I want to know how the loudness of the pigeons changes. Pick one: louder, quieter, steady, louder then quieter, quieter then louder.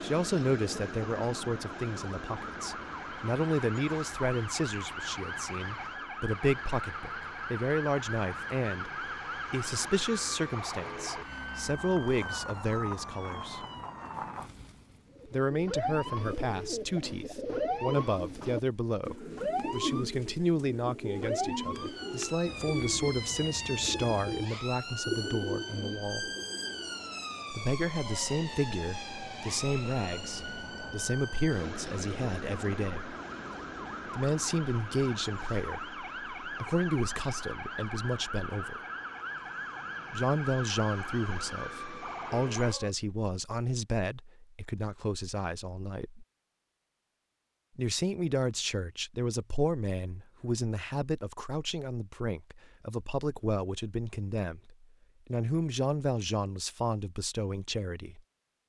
steady.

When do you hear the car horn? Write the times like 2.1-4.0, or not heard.
not heard.